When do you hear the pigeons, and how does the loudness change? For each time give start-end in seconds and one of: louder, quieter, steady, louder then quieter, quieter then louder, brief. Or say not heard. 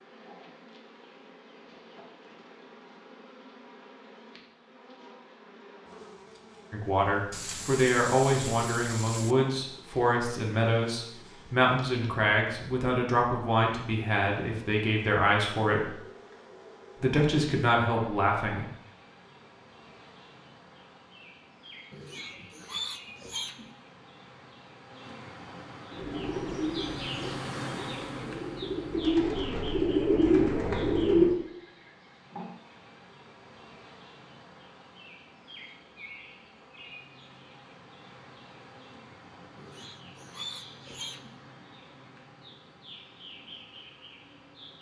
25.9-31.4 quieter then louder.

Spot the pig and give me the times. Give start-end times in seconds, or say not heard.
7.3-9.3, 21.9-23.7, 39.5-41.4.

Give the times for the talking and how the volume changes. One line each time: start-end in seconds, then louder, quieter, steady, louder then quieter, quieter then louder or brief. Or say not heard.
6.7-15.9 steady
16.9-18.6 brief.